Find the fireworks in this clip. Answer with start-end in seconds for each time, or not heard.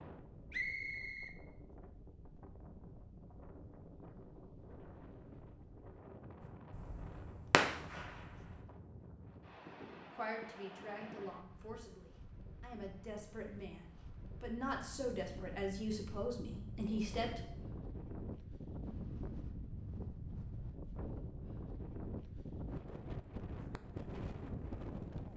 6.4-8.6.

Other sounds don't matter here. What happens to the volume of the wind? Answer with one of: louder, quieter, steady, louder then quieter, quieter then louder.
louder.